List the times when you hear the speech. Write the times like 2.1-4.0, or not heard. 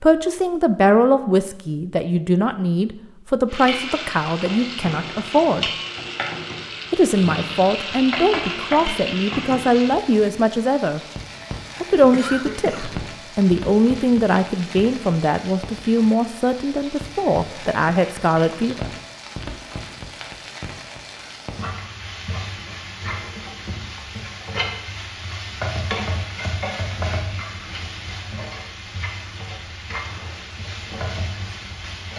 0.0-5.7, 6.9-11.0, 11.8-18.9.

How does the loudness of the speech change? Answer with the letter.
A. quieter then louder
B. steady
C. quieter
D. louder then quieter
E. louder
B.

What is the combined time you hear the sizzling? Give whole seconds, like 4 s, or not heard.
29 s.